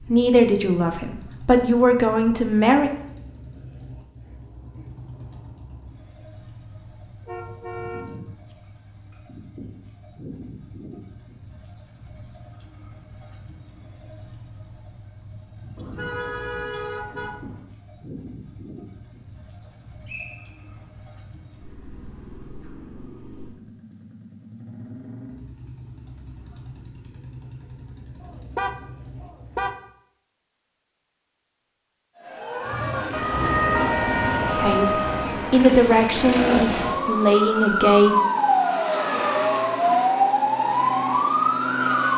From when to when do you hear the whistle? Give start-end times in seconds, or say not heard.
19.6-20.9.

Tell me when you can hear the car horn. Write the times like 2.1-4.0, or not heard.
7.2-8.6, 15.8-17.6, 28.2-29.8.